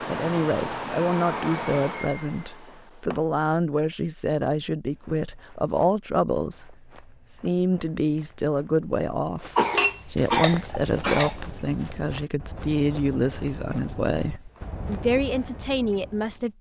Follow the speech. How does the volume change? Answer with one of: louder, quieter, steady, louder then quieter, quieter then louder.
steady.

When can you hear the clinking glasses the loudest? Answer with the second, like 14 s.
10 s.